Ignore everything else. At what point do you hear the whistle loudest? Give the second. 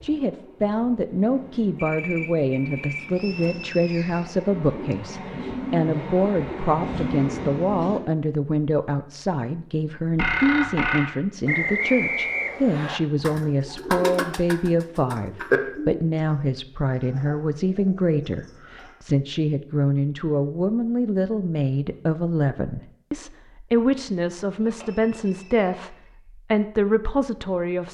12 s.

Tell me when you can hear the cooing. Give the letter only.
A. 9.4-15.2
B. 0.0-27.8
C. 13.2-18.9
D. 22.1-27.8
C.